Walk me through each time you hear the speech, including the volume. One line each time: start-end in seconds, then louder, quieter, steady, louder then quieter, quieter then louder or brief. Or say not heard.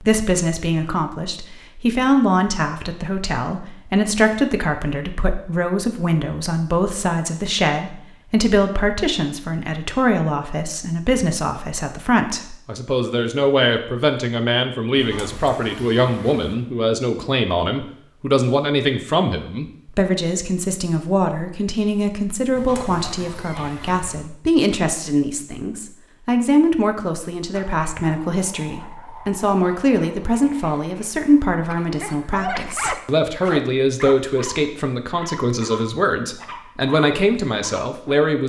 0.0-38.4 steady.